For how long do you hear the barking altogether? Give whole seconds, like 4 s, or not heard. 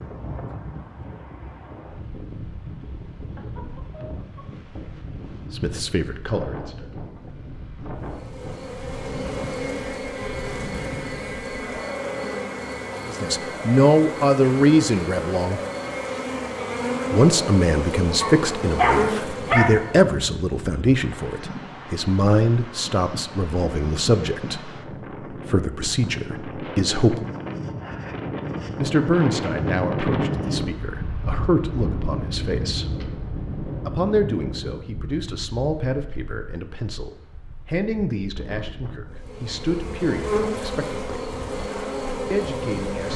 2 s.